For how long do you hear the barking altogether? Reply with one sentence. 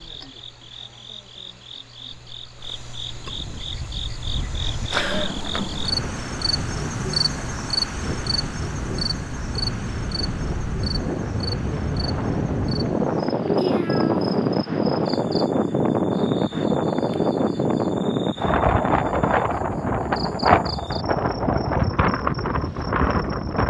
You can't hear the barking here.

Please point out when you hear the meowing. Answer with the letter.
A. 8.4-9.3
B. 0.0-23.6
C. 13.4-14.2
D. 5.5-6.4
C.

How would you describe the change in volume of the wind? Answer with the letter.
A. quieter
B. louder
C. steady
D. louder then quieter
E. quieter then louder
B.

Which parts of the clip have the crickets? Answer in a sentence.
The crickets can be heard from 0.0 to 23.6 s.